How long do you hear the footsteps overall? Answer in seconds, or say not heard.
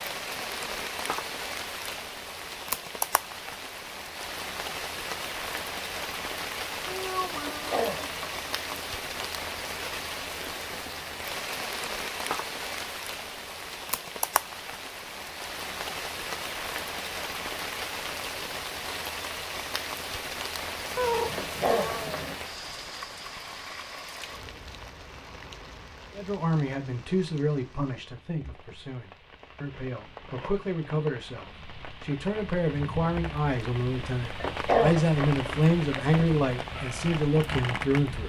not heard.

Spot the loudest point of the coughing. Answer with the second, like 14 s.
35 s.